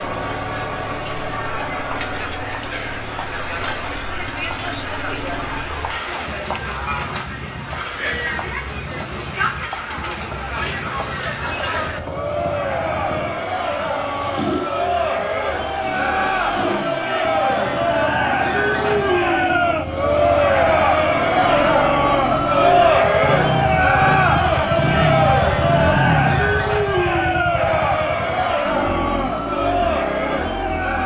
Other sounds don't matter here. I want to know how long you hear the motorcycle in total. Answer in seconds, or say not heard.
31 s.